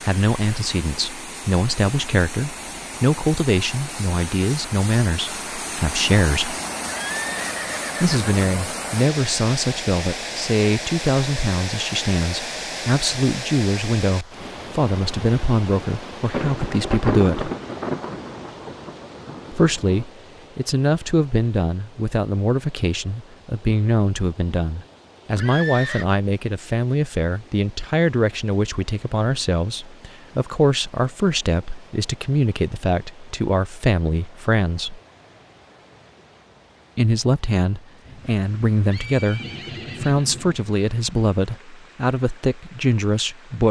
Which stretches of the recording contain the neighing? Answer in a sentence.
You can hear the neighing from 6.8 to 8.5 s, from 25.4 to 26.1 s and from 38.9 to 40.5 s.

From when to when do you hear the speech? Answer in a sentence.
You can hear the speech from 0.0 to 6.5 s, from 8.0 to 17.5 s, from 19.5 to 35.0 s, from 37.0 to 39.4 s and from 40.0 to 43.6 s.